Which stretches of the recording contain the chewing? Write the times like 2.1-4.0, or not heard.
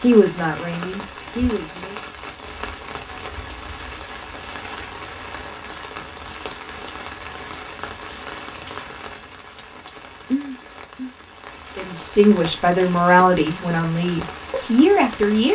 not heard.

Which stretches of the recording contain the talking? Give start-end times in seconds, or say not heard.
0.0-1.9, 11.8-15.5.